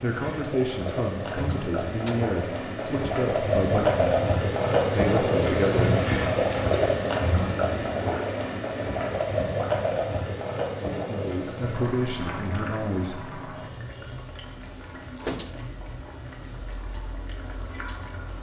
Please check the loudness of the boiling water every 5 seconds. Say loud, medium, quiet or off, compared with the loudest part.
loud, loud, medium, quiet.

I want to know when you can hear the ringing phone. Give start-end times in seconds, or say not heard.
not heard.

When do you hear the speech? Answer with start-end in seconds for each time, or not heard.
0.0-4.2, 4.9-6.0, 10.8-13.2.